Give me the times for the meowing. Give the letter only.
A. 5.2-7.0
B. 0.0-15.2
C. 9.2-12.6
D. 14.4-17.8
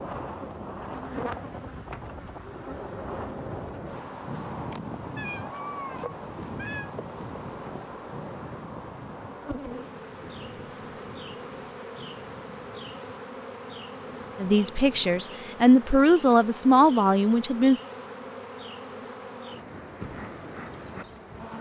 A.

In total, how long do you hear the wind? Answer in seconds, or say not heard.
15 s.